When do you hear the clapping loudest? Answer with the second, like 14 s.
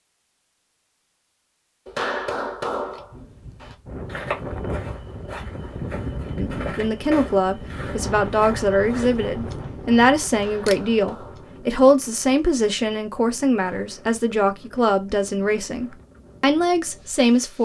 2 s.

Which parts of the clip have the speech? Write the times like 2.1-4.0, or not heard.
6.3-17.5.